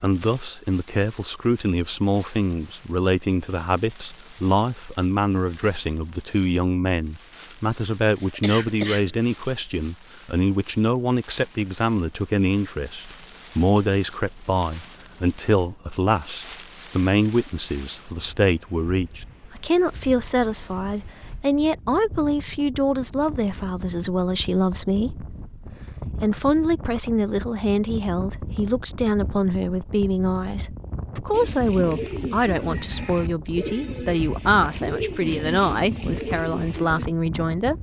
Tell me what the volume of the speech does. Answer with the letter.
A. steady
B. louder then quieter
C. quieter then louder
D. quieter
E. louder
A.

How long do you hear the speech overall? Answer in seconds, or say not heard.
38 s.